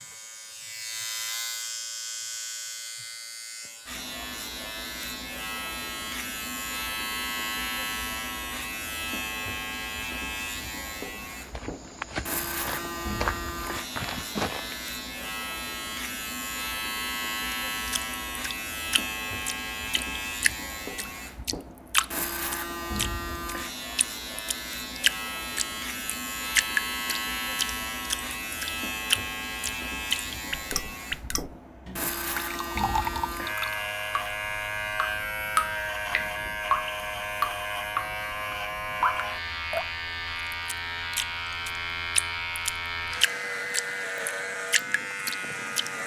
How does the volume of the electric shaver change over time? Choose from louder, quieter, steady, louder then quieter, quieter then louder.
steady.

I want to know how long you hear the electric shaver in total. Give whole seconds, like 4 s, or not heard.
46 s.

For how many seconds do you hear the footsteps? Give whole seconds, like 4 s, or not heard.
4 s.